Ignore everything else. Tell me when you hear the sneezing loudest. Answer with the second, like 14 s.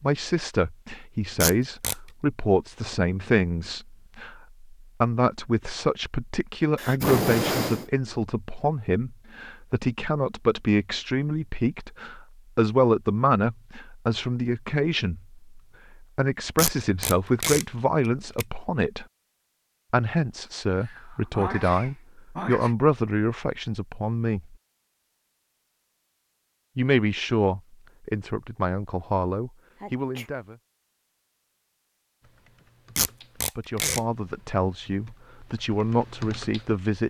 7 s.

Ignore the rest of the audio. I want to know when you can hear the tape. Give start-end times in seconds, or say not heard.
1.4-1.9, 16.6-17.6, 33.0-34.0.